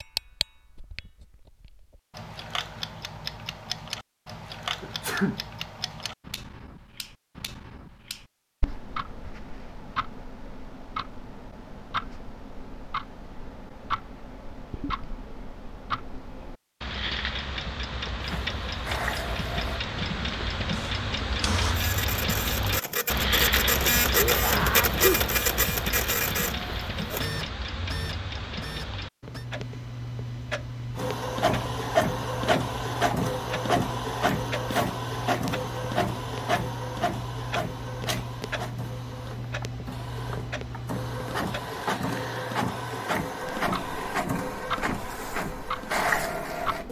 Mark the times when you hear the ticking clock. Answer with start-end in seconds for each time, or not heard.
0.0-46.8.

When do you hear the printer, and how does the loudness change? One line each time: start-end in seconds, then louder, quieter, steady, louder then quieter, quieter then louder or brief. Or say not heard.
18.2-29.4 louder then quieter
30.9-46.8 quieter then louder.